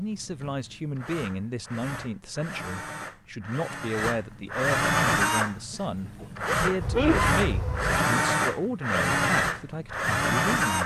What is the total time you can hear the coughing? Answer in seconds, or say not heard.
2 s.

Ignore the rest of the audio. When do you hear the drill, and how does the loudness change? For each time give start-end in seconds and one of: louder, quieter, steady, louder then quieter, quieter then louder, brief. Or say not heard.
0.0-10.8 louder.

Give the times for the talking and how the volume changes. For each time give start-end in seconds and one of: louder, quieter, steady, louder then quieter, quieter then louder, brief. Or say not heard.
0.0-10.8 steady.